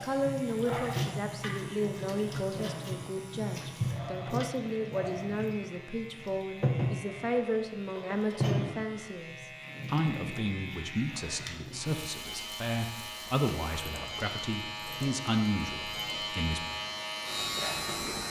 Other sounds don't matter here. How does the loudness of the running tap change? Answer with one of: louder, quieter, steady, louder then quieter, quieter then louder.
quieter.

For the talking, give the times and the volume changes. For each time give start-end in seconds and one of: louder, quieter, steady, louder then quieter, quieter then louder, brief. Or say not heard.
0.0-16.6 steady.